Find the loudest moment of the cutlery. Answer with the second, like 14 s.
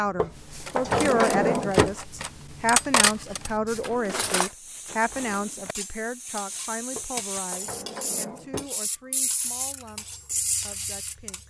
3 s.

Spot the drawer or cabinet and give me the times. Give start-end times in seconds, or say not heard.
0.1-1.9, 7.0-8.7.